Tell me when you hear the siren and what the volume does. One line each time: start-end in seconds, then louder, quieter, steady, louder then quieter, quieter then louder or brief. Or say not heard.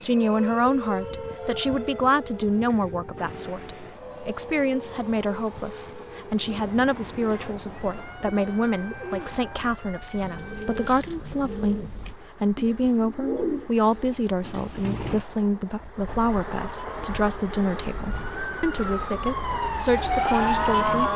0.0-10.8 quieter
16.5-21.1 louder.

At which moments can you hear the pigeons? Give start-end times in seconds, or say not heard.
6.5-15.2.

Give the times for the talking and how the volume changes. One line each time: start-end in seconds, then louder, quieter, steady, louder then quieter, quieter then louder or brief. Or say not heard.
0.0-21.1 steady.